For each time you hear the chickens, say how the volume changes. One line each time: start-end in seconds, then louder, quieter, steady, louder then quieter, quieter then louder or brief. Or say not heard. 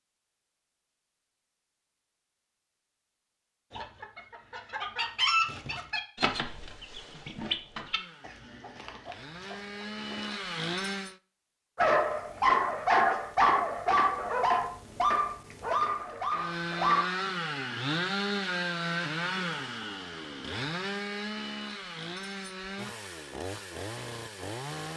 3.7-10.4 quieter.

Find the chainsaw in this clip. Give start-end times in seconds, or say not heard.
7.7-11.2, 16.3-24.9.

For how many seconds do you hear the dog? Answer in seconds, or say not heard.
5 s.